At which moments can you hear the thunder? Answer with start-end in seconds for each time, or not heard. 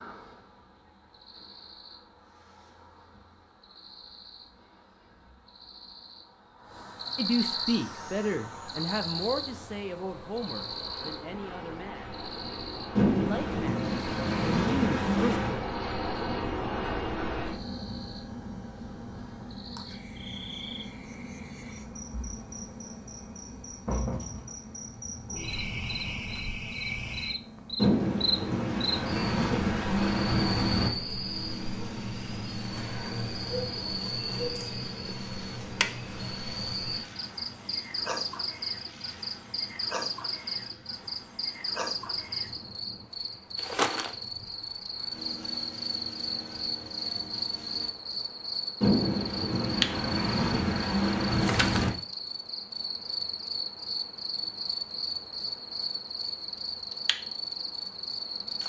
12.9-15.6, 27.8-30.9, 48.8-51.9.